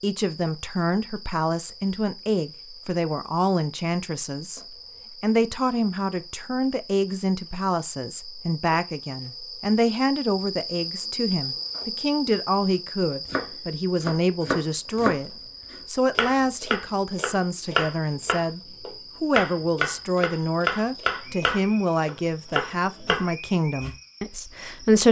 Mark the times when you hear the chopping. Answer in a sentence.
The chopping can be heard from 13.2 to 23.9 s.